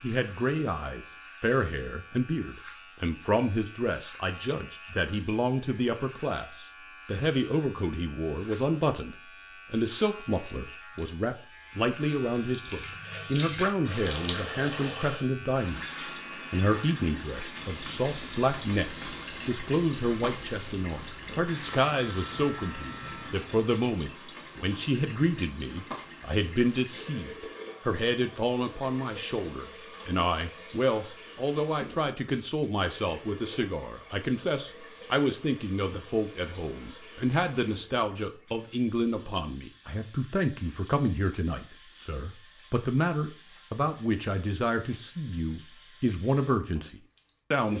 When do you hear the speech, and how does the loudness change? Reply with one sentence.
The speech can be heard from 0.0 to 15.8 s, at a steady volume; and from 16.5 to 47.7 s, at a steady volume.